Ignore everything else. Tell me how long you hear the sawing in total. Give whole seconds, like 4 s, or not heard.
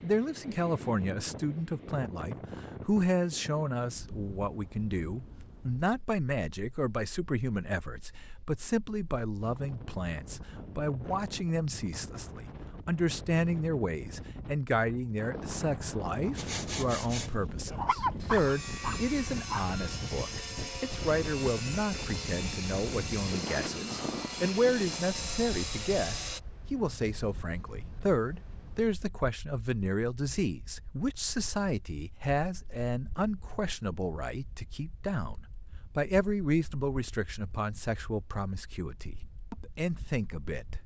10 s.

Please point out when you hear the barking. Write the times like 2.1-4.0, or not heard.
17.7-19.6.